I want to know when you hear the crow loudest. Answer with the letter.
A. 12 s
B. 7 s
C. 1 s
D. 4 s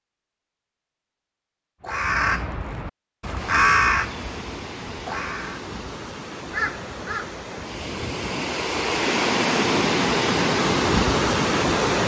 D.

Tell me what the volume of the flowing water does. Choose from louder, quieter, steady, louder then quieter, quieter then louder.
louder.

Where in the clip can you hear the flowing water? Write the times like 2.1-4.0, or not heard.
3.3-12.0.